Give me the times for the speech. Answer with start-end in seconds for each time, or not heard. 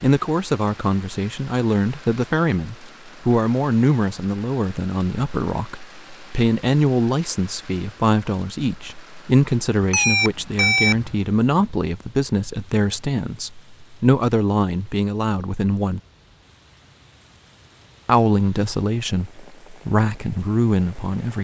0.0-16.0, 18.1-21.3.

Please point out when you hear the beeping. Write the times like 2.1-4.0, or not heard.
9.8-11.7.